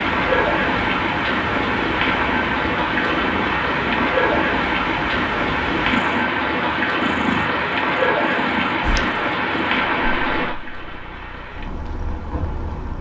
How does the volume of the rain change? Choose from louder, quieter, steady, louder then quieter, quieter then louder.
quieter.